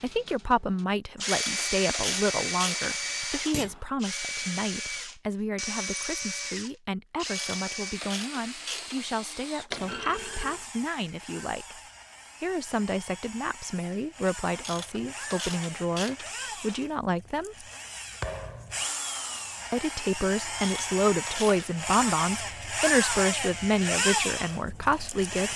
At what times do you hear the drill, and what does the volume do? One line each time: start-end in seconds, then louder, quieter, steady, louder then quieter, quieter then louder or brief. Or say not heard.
0.1-25.5 quieter then louder.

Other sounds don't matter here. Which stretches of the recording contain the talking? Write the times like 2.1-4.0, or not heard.
0.0-11.8, 12.4-17.6, 19.7-25.5.